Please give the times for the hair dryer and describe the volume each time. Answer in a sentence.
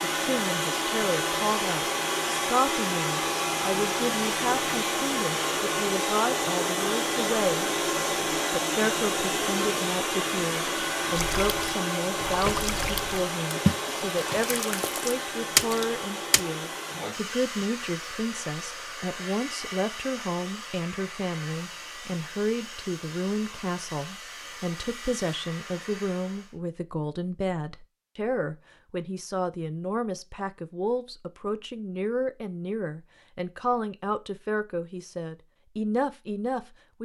The hair dryer can be heard from 0.0 to 26.6 s, getting quieter.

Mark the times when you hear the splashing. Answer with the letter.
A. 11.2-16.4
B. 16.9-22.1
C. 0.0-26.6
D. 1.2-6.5
A.